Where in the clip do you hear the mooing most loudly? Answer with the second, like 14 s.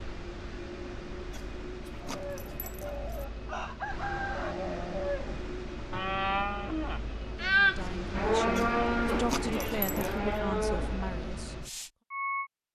8 s.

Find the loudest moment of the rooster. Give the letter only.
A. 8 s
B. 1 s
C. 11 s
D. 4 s
D.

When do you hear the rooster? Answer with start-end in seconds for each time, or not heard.
2.6-4.5.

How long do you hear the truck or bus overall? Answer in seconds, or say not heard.
13 s.